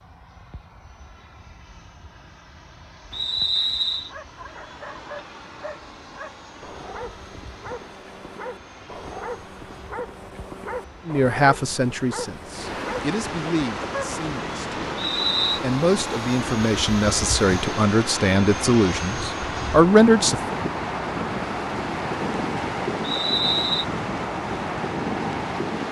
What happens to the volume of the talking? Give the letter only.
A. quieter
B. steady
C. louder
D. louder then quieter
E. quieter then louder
E.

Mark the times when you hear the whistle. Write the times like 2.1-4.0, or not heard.
3.1-4.1, 14.9-15.6, 23.0-23.9.